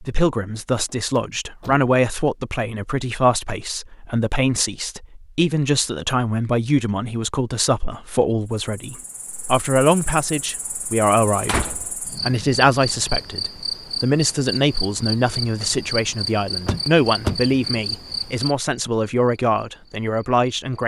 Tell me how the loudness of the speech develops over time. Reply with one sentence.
The loudness of the speech stays about the same.